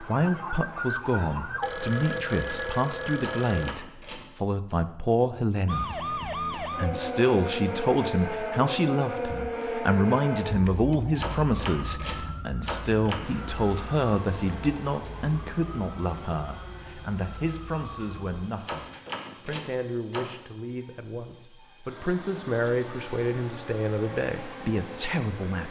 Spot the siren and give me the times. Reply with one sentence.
The siren can be heard from 0.0 to 1.7 s and from 5.7 to 18.4 s.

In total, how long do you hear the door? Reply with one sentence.
The door can be heard for 5 seconds in total.